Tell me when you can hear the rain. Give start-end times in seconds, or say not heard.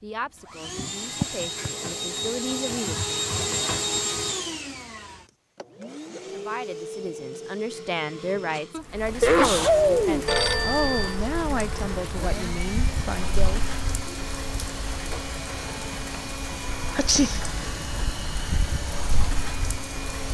8.9-20.2.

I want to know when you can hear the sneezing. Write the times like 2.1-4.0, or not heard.
0.8-1.7, 8.7-10.2, 16.9-17.4.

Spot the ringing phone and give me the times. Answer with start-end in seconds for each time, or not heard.
10.2-11.2.